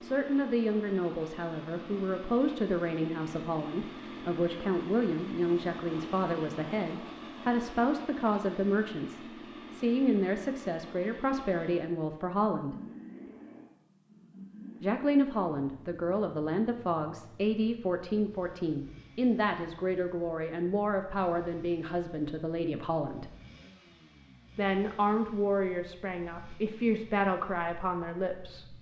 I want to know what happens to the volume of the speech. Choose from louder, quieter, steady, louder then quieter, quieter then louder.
steady.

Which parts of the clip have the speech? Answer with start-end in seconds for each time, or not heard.
0.0-12.8, 14.8-23.3, 24.6-28.7.